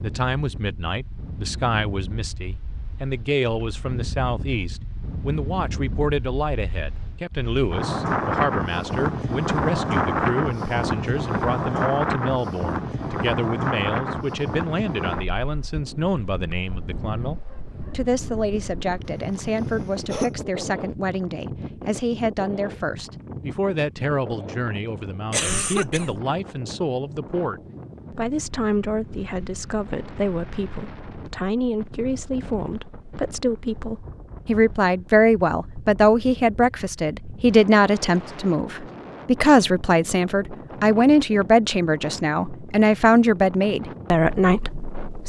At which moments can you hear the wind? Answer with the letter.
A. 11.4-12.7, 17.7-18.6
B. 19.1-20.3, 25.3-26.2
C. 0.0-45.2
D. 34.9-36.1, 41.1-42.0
C.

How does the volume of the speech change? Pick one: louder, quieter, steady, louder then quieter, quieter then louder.
louder.